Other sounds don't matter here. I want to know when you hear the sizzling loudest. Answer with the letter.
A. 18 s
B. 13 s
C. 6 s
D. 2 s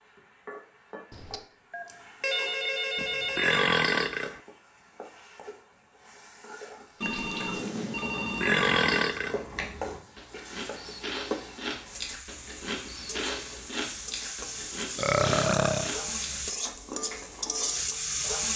A.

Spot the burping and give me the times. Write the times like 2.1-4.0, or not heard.
3.0-4.4, 8.2-9.4, 14.9-15.9.